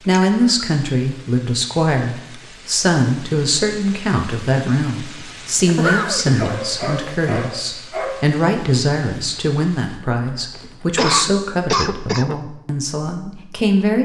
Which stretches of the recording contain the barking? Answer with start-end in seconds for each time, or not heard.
6.3-8.2.